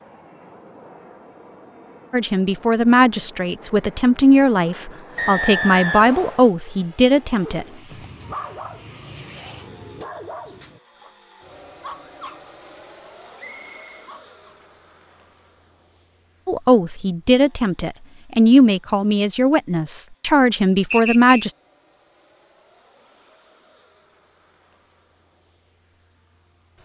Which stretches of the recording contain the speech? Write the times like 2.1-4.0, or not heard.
2.1-7.7, 16.4-21.5.